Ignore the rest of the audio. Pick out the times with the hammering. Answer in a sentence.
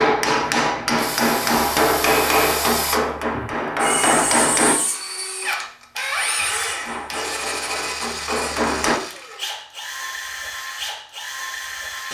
You can hear the hammering from 0.0 to 4.8 s and from 6.8 to 9.0 s.